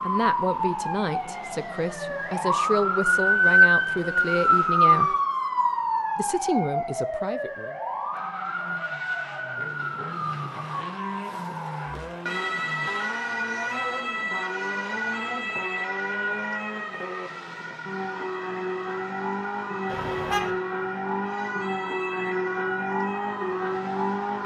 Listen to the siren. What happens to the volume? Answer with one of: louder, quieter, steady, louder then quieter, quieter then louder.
quieter.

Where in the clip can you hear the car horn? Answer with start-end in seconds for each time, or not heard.
19.9-20.5.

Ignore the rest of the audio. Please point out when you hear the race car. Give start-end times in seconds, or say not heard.
0.0-5.2, 8.1-24.4.